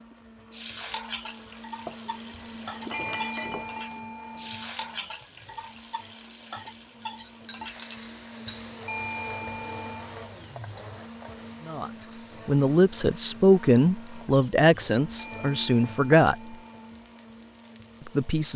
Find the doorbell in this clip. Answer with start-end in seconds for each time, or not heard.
2.9-4.7, 8.8-10.1, 15.2-16.8.